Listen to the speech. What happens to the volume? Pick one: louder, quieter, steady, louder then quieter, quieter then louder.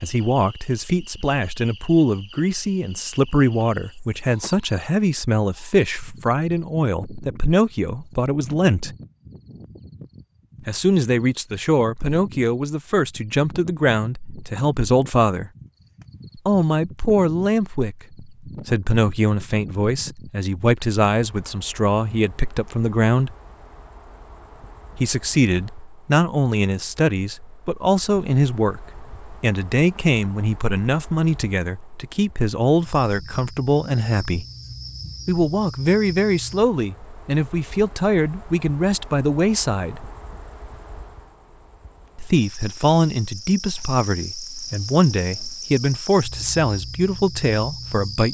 steady.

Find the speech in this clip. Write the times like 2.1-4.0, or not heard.
0.0-8.9, 10.7-15.5, 16.4-23.4, 24.9-34.5, 35.2-40.1, 42.1-48.2.